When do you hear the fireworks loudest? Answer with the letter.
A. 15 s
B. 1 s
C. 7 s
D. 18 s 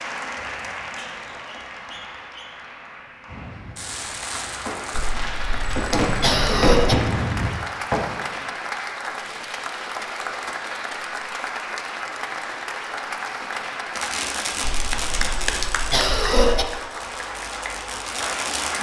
C.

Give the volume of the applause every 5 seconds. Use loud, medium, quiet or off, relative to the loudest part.
medium, loud, loud, loud.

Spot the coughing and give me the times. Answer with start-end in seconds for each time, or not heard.
4.9-7.0, 14.6-16.6.